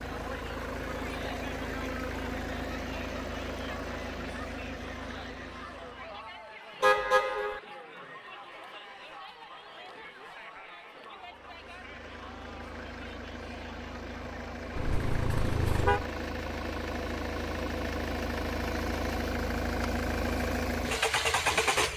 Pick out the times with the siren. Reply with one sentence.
You can't hear the siren here.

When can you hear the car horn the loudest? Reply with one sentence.
The loudest moment of the car horn is at 7 seconds.